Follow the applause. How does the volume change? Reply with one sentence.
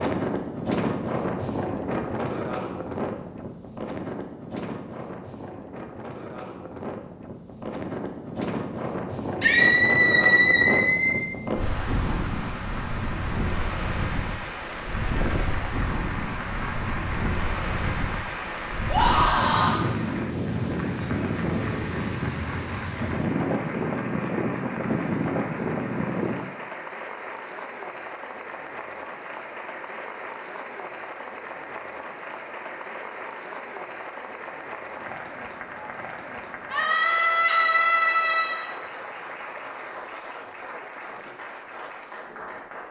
The volume of the applause stays about the same.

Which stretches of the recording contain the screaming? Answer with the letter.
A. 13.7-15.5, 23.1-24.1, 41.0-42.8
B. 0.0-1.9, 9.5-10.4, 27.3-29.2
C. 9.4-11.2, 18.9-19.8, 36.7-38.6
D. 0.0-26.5
C.